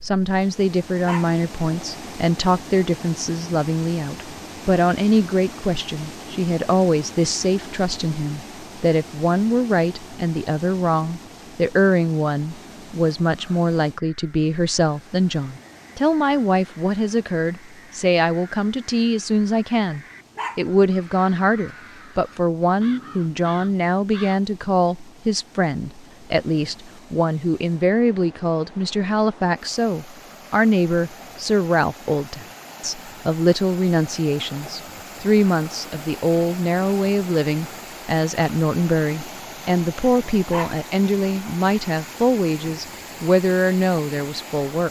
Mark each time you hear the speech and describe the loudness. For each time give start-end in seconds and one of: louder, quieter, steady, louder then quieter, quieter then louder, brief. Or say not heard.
0.0-44.8 steady.